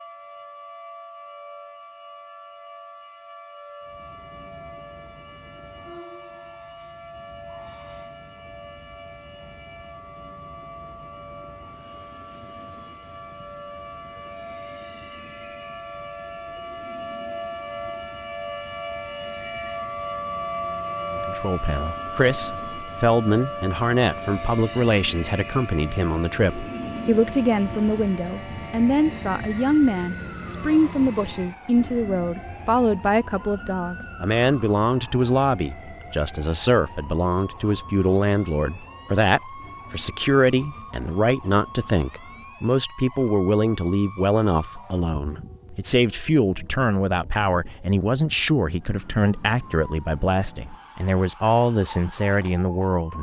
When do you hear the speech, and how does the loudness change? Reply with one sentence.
You can hear the speech from 21.1 to 53.1 s, at a steady volume.